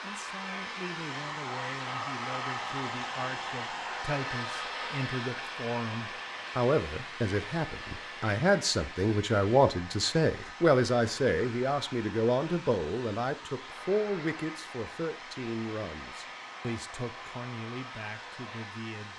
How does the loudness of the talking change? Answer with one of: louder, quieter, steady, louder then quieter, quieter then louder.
louder then quieter.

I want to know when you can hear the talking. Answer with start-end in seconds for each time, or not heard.
0.0-19.1.